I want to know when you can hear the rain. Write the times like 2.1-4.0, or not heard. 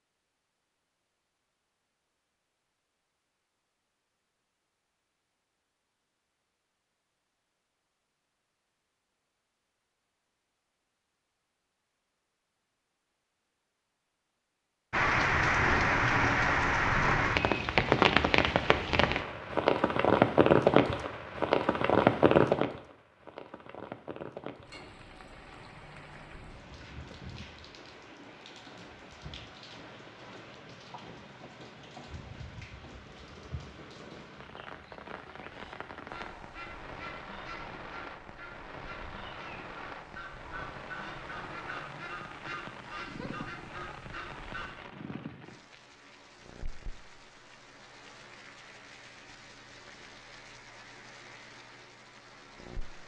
14.9-53.0.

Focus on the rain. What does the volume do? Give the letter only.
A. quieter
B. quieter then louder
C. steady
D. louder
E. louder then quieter
A.